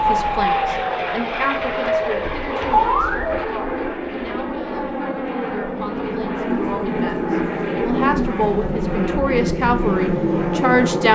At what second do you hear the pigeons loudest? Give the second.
3 s.